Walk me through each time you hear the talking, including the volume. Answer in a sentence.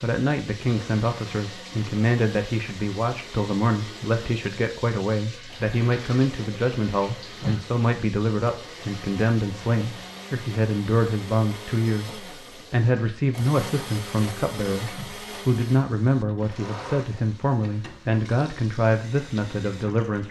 The talking can be heard from 0.0 to 20.2 s, at a steady volume.